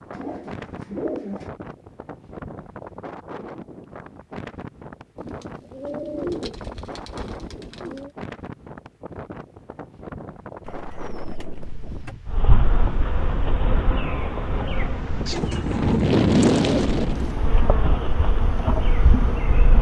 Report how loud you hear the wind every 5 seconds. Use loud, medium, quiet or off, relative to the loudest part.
quiet, quiet, quiet, loud.